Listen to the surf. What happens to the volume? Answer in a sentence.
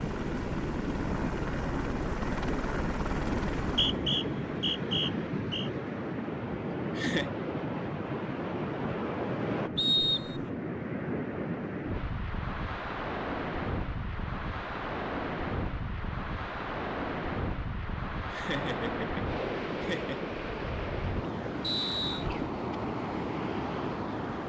The loudness of the surf stays about the same.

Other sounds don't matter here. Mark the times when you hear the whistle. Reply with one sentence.
The whistle can be heard from 3.6 to 5.7 s, from 9.8 to 10.5 s and from 21.6 to 22.2 s.